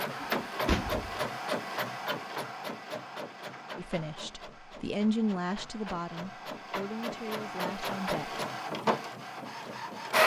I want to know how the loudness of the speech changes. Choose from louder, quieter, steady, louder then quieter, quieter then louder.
louder then quieter.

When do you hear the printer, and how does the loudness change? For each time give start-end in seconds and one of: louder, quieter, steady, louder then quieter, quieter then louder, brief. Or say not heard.
0.0-10.2 quieter then louder.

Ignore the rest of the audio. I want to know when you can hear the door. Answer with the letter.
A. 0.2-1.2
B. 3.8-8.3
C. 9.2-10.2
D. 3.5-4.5
A.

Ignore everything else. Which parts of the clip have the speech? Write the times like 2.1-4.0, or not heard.
3.8-8.3.